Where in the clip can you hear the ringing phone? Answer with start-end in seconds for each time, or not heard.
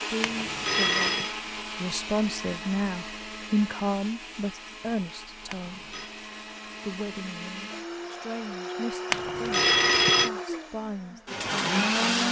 0.2-1.4, 5.5-6.1, 9.1-10.3.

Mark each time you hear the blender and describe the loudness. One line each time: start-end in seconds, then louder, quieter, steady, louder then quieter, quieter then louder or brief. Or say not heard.
0.0-12.2 quieter then louder.